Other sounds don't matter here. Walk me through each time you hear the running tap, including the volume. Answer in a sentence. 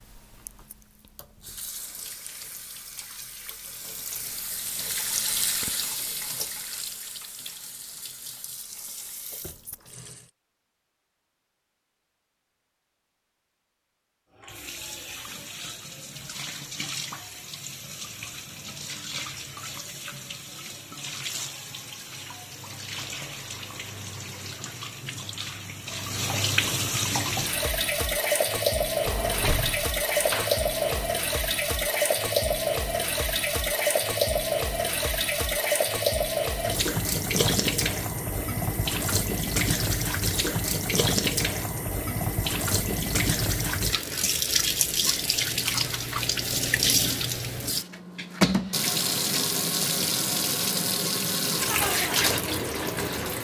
The running tap can be heard from 0.0 to 10.3 s, getting louder then quieter; and from 14.3 to 53.3 s, getting louder.